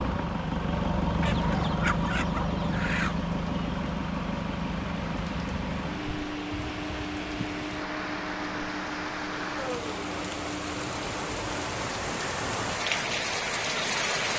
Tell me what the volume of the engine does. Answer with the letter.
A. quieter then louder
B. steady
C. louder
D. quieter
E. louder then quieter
D.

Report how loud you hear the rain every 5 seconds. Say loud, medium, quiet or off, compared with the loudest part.
quiet, medium, loud.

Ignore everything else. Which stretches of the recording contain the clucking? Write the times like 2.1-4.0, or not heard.
1.2-3.2.